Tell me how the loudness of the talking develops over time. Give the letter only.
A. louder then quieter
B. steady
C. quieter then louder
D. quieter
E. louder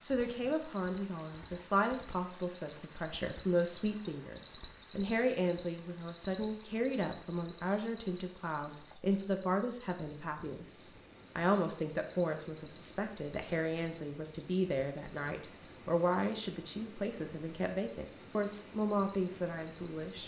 B.